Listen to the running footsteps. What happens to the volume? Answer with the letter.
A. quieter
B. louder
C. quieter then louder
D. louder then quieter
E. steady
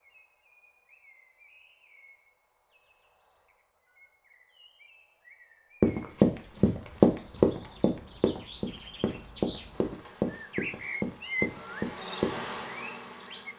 A.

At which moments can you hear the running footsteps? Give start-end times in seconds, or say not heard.
5.8-12.4.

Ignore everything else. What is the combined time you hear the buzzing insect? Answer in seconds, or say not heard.
4 s.